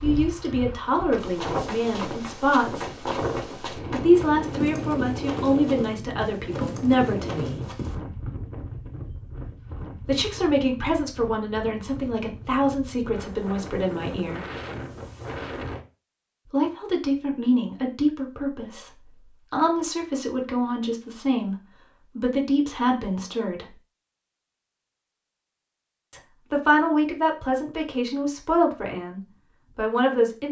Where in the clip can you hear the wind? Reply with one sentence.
You can hear the wind from 0.0 to 15.8 s.